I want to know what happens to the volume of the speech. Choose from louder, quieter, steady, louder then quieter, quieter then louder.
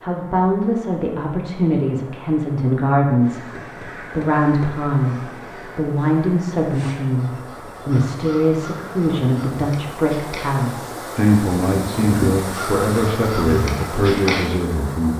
steady.